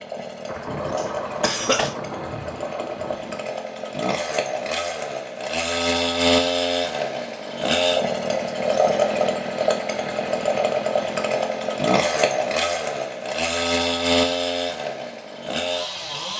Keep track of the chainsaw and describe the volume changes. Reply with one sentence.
The loudness of the chainsaw goes up.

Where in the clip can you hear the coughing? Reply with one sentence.
The coughing can be heard from 0.9 to 1.9 s.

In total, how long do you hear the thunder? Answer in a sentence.
You can hear the thunder for 3 seconds altogether.